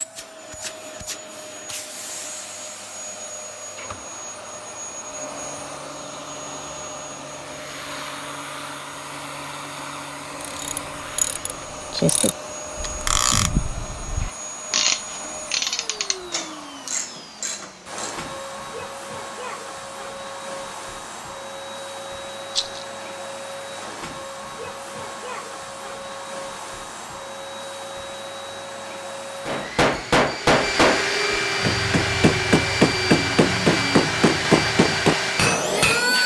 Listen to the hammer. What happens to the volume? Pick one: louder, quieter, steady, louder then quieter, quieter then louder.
quieter then louder.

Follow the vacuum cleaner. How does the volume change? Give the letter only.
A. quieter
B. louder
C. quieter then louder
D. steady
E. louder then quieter
B.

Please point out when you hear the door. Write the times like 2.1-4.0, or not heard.
not heard.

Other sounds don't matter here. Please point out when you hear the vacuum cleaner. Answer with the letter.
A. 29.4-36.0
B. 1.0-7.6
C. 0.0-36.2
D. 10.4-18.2
C.